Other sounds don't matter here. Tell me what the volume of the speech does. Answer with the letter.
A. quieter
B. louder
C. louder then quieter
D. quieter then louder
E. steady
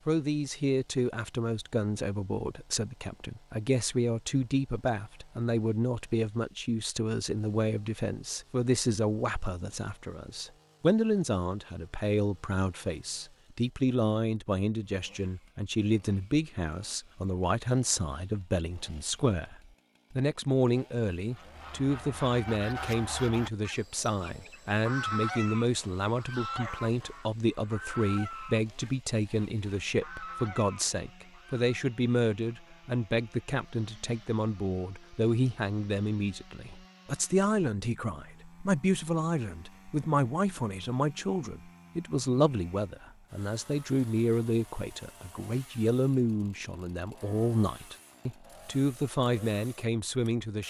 E.